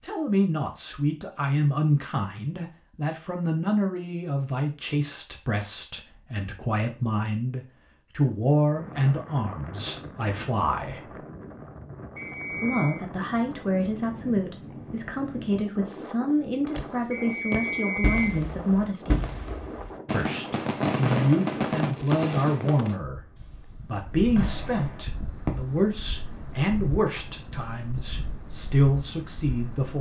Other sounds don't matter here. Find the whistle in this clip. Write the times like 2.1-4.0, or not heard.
12.2-13.1, 17.1-18.4.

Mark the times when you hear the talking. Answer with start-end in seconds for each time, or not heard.
0.0-11.2, 12.5-19.3, 20.1-23.2, 23.9-29.9.